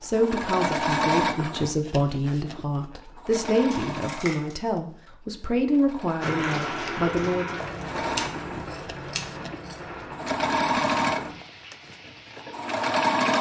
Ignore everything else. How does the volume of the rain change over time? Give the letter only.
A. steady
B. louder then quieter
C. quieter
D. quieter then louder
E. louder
C.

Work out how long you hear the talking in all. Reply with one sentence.
You can hear the talking for 8 seconds altogether.